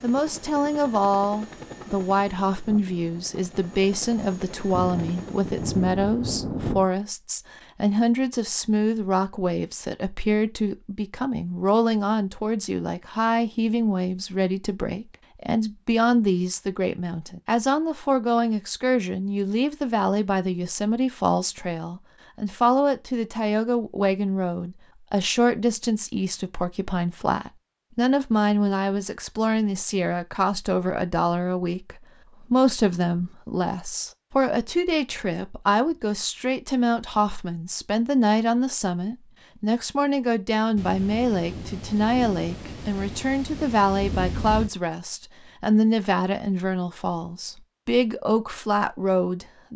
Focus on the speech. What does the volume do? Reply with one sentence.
The loudness of the speech stays about the same.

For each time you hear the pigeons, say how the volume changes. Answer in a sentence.
You can't hear the pigeons here.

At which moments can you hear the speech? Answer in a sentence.
The speech can be heard from 0.0 to 49.7 s.